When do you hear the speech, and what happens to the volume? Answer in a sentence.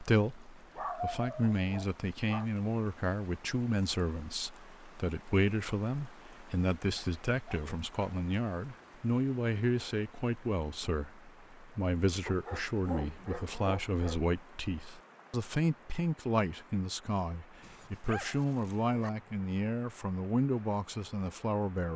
You can hear the speech from 0.0 to 21.9 s, at a steady volume.